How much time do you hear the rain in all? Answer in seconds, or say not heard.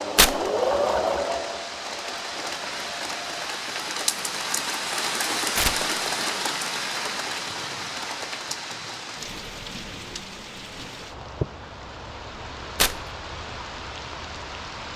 15 s.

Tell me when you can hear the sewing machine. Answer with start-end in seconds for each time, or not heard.
0.0-3.5.